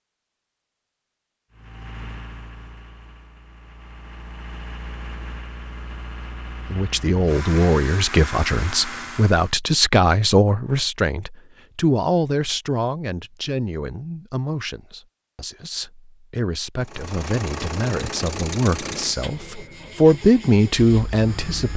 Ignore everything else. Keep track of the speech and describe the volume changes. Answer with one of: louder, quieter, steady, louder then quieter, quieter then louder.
quieter then louder.